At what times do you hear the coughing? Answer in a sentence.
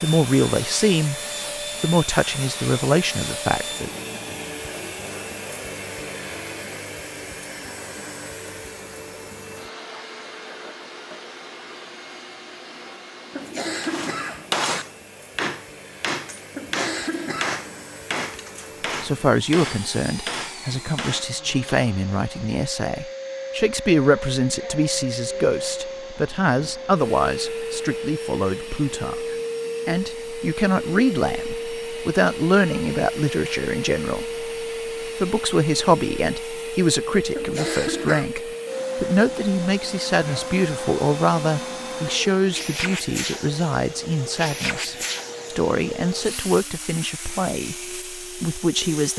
You can hear the coughing from 13.3 to 14.8 s, from 16.5 to 17.9 s and from 37.3 to 38.3 s.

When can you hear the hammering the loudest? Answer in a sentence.
The loudest moment of the hammering is at 15 seconds.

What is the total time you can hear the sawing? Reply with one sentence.
You can't hear the sawing here.